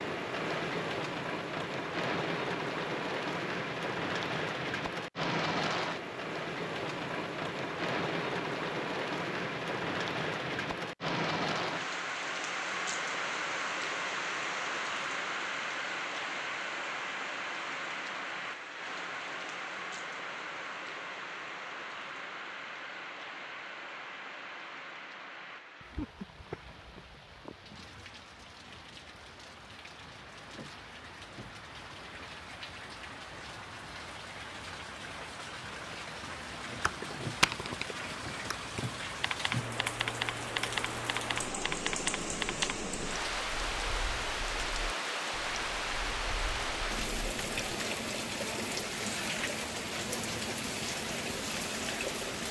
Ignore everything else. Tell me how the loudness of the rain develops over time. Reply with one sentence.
The volume of the rain goes down, then up.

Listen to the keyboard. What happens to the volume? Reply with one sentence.
The volume of the keyboard goes down.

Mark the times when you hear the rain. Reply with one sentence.
The rain can be heard from 0.0 to 52.4 s.